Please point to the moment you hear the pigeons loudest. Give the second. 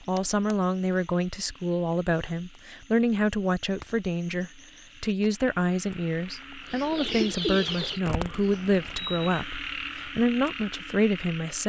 7 s.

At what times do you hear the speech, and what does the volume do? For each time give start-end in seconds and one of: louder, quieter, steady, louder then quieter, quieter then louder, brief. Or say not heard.
0.0-11.6 steady.